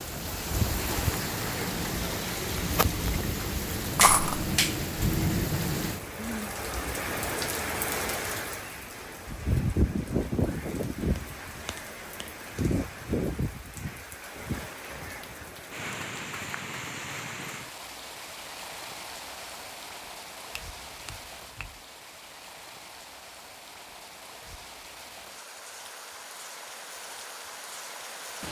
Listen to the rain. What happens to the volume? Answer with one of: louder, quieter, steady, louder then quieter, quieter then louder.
quieter.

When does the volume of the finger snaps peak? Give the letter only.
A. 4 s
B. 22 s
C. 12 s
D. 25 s
A.